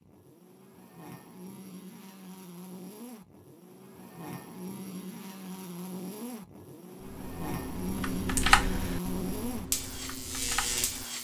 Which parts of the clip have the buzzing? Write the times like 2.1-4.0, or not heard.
0.0-11.2.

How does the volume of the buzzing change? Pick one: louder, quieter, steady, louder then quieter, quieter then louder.
louder.